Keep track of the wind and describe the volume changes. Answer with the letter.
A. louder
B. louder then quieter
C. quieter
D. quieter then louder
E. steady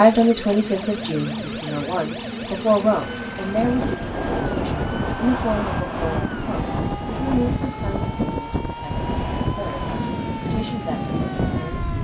E.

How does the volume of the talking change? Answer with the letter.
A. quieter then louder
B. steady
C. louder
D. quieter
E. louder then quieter
D.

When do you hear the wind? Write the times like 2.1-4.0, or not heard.
3.5-11.9.